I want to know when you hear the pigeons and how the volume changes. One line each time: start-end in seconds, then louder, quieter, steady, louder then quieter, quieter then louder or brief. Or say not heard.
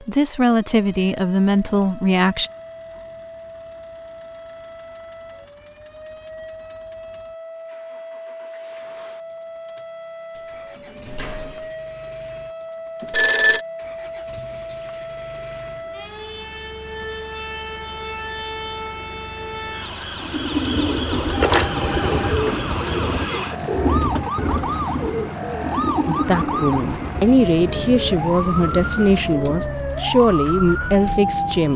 20.2-29.6 quieter.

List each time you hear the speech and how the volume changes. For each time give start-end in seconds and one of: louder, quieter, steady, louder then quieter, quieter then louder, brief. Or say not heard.
0.1-2.5 brief
26.1-31.7 steady.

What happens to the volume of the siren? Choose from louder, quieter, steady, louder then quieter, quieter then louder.
louder.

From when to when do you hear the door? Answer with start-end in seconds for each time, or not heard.
10.3-11.7.